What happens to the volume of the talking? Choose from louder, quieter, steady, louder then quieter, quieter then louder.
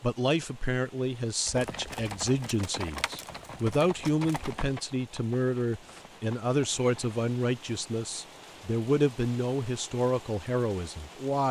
steady.